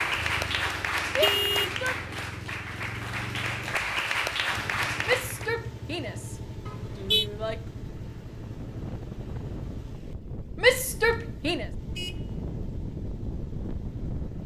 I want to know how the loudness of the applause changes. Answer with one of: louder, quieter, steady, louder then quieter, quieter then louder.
quieter then louder.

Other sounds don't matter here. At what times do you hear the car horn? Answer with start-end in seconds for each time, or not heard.
1.1-2.1, 6.7-7.2, 11.8-12.7.